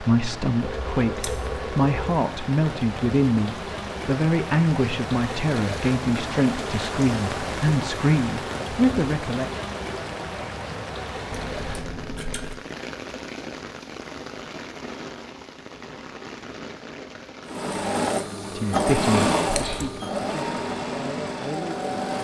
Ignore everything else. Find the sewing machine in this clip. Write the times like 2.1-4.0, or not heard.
17.4-22.1.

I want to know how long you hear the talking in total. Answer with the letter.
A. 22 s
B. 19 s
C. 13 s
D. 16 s
C.